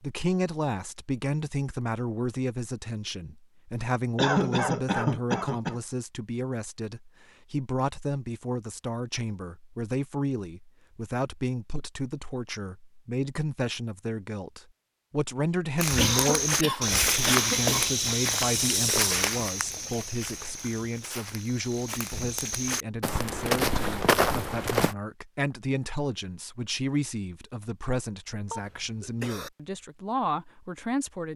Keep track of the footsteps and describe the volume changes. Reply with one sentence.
The volume of the footsteps goes down, then up.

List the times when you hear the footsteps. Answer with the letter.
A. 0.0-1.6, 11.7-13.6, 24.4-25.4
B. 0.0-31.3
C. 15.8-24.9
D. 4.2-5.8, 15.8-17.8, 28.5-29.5
C.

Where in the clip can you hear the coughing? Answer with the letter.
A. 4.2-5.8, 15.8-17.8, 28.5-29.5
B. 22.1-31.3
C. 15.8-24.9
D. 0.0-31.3
A.